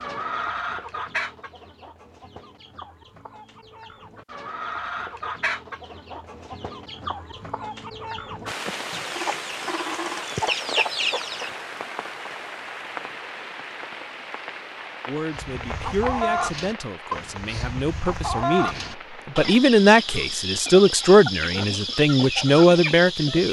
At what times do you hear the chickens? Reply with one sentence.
You can hear the chickens from 0.0 to 11.6 s and from 15.3 to 23.4 s.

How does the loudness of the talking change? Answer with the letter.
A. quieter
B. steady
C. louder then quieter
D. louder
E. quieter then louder
D.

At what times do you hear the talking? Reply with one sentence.
You can hear the talking from 15.1 to 23.4 s.